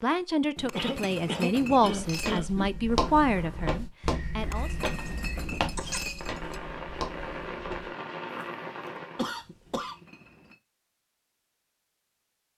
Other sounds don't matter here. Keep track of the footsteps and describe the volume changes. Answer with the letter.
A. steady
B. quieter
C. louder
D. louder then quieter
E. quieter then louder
B.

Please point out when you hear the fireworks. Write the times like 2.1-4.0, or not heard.
2.9-9.4.